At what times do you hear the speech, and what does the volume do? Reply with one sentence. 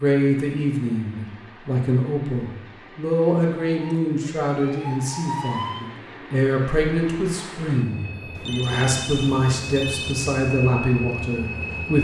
You can hear the speech from 0.0 to 11.9 s, at a steady volume.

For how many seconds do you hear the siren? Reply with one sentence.
You can hear the siren for 2 seconds altogether.